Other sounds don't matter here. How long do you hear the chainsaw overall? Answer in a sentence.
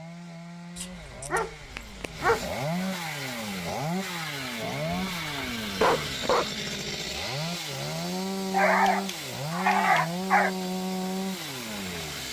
The chainsaw can be heard for 12 seconds in total.